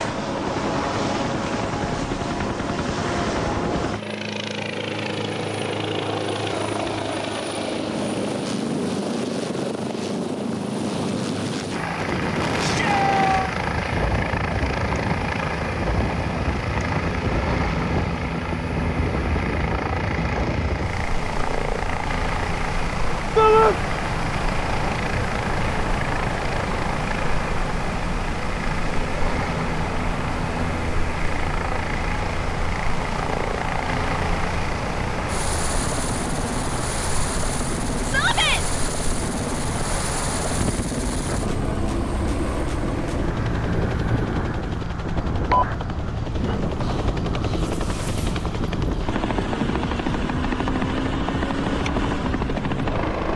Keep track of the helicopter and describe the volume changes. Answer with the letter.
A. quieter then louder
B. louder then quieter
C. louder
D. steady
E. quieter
D.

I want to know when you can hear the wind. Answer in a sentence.
The wind can be heard from 11.9 to 53.0 s.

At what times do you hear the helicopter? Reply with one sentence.
The helicopter can be heard from 0.0 to 53.3 s.